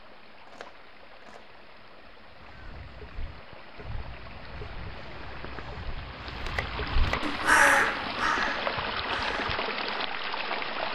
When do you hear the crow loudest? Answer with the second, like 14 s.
8 s.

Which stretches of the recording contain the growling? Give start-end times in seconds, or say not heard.
not heard.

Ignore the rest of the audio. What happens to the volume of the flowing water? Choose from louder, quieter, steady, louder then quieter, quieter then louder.
louder.